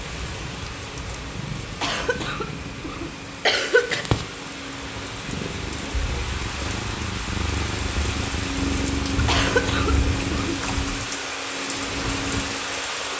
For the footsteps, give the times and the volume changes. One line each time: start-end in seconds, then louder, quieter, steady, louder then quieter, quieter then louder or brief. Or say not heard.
not heard.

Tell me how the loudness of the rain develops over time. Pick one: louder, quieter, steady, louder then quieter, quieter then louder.
louder.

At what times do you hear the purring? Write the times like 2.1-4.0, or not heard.
0.2-10.6.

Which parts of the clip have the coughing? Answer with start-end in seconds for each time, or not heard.
1.8-4.0, 9.2-10.8.